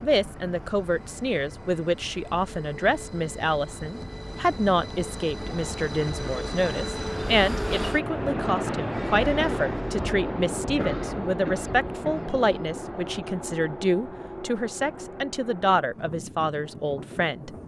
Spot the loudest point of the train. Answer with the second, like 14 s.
9 s.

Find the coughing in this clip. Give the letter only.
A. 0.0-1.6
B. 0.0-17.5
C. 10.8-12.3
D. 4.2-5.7
C.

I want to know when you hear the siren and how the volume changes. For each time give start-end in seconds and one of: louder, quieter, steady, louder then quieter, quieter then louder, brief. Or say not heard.
not heard.